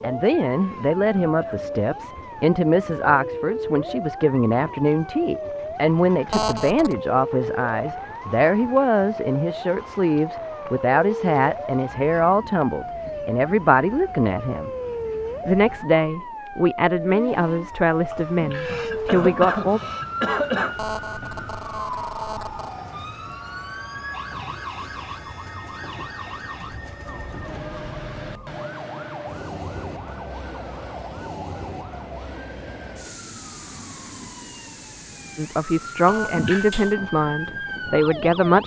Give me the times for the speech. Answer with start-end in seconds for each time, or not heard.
0.0-14.7, 15.4-19.8, 35.4-38.6.